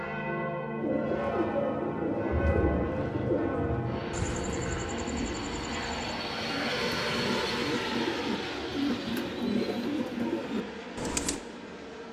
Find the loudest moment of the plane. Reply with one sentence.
The volume of the plane peaks at 7 seconds.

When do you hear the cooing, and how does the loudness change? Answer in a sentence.
The cooing can be heard from 0.8 to 11.4 s, getting quieter then louder.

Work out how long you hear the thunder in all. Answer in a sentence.
You can hear the thunder for 3 seconds altogether.